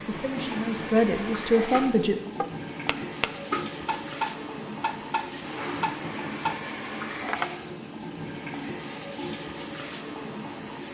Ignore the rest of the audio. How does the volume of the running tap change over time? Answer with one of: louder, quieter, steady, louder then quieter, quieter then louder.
steady.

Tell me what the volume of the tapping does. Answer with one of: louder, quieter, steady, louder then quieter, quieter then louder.
louder.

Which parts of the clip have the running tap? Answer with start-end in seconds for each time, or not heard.
0.0-10.8.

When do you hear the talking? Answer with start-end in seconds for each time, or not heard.
0.1-2.1.